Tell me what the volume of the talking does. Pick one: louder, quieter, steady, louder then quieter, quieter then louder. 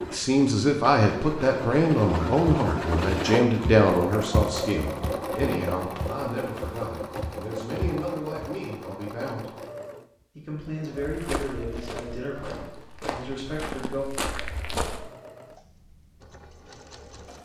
quieter.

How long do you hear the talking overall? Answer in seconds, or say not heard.
13 s.